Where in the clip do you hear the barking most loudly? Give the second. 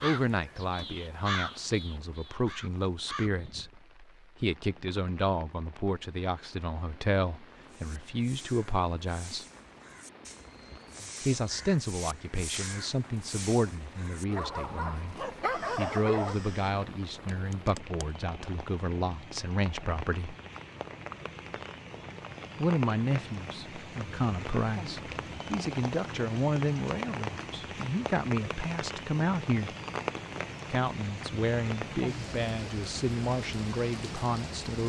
16 s.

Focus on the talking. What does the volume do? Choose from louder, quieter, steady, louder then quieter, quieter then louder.
steady.